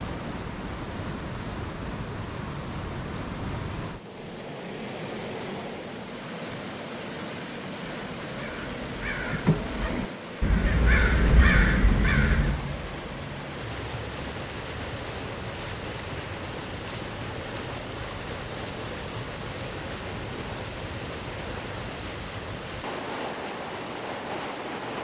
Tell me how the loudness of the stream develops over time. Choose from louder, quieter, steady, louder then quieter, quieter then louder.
steady.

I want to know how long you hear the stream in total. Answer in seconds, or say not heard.
25 s.